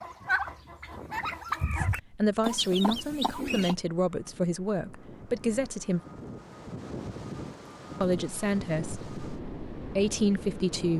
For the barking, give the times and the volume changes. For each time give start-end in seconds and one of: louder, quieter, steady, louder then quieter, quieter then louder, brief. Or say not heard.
not heard.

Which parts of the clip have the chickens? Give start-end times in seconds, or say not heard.
0.0-3.8.